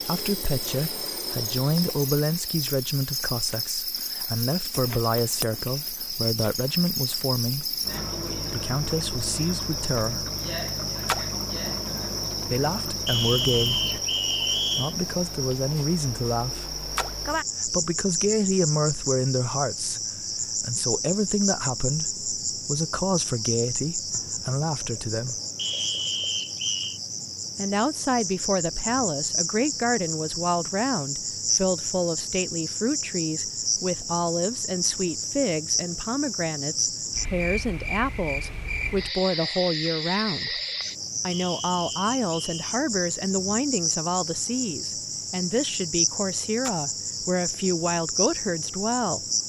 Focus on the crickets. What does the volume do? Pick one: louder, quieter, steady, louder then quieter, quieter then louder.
steady.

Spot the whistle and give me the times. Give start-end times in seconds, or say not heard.
13.1-14.9, 25.6-27.0, 41.3-42.8.